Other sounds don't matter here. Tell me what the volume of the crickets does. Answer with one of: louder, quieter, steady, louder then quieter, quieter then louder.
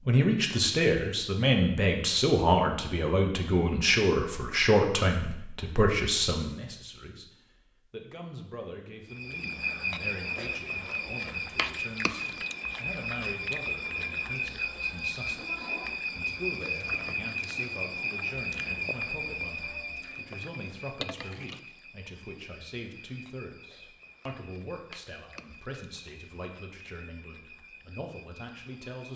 quieter.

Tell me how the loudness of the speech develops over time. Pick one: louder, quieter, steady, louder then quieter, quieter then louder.
quieter.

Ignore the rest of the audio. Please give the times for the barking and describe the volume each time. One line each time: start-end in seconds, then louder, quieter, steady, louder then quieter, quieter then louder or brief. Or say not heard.
not heard.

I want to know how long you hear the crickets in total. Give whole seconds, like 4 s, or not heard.
20 s.